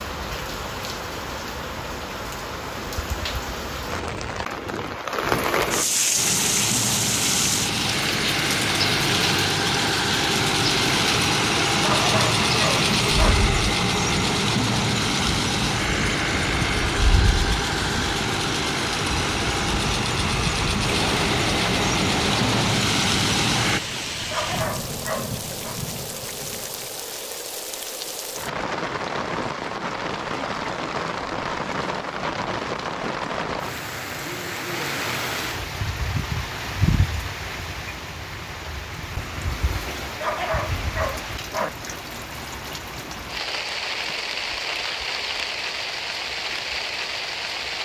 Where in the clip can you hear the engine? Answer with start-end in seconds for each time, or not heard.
6.2-23.8.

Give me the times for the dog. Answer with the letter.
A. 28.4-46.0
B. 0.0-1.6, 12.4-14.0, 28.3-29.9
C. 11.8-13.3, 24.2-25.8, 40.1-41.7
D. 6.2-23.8
C.